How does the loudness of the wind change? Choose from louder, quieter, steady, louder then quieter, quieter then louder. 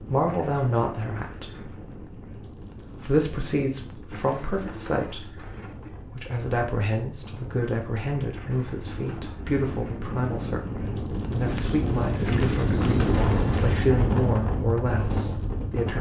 louder.